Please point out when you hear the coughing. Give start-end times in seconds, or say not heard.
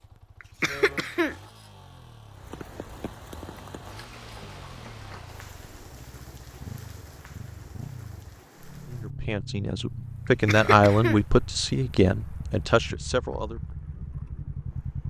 0.4-1.4, 10.2-11.2.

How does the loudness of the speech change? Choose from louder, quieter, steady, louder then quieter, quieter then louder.
louder then quieter.